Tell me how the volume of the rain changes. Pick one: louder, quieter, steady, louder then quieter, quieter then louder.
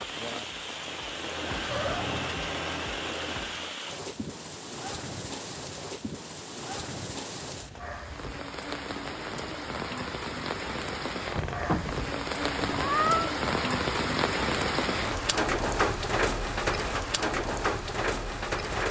louder.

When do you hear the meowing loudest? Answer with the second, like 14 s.
13 s.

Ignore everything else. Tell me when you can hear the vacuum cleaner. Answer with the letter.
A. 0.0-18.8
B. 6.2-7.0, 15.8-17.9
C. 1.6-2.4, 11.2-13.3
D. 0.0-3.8
D.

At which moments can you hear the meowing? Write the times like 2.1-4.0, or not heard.
1.6-2.4, 11.2-13.3.